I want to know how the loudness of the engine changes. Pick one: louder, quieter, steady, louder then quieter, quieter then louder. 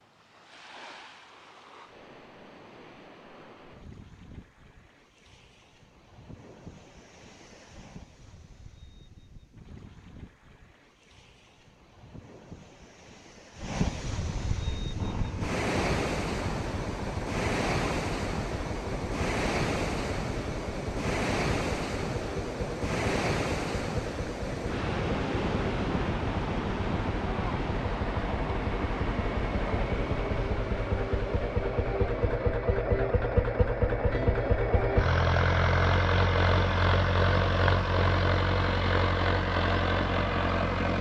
louder.